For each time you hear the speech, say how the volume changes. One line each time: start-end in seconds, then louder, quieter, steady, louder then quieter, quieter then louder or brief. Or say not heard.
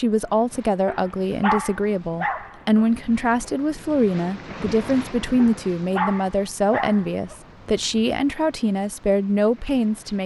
0.0-10.2 steady.